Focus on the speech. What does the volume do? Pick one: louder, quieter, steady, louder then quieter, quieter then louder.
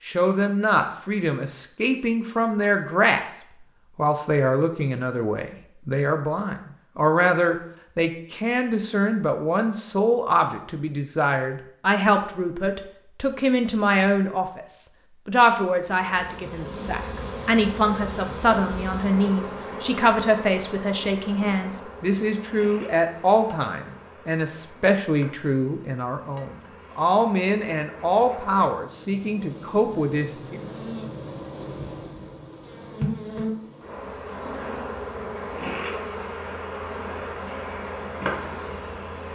steady.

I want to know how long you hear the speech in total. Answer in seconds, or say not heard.
30 s.